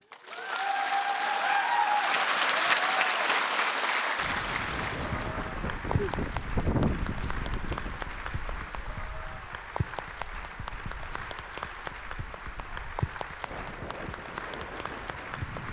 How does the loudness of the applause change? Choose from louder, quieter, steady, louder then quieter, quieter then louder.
quieter.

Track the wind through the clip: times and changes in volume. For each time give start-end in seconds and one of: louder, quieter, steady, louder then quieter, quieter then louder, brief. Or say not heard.
4.2-15.6 quieter then louder.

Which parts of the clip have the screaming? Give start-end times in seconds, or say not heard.
not heard.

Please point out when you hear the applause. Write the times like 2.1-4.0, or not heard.
0.1-15.6.